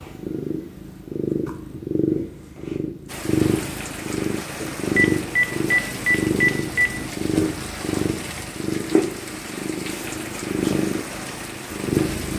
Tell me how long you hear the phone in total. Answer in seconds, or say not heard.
2 s.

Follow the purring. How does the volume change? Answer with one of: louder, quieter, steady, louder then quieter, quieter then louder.
steady.